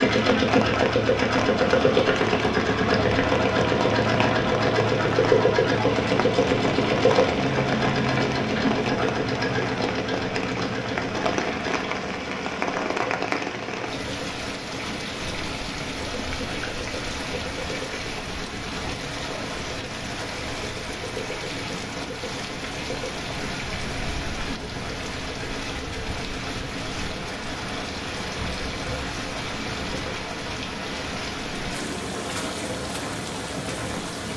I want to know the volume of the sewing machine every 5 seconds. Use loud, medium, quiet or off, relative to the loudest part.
loud, loud, medium, quiet, quiet, quiet, quiet.